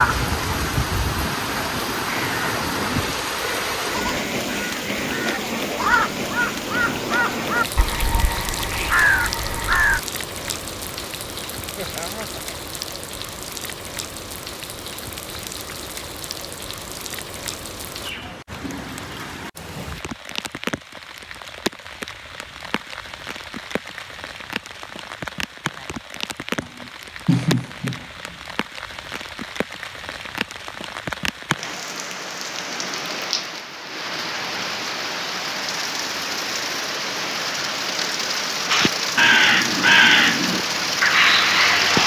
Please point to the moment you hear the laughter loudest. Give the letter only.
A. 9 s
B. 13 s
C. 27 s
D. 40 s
C.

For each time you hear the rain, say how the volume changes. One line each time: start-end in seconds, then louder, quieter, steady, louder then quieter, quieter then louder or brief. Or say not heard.
0.0-42.0 quieter then louder.